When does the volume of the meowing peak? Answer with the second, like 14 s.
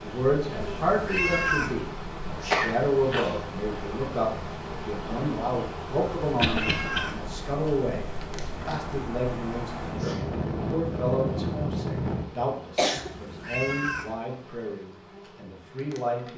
1 s.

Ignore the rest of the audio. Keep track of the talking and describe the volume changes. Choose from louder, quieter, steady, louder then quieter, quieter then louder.
quieter.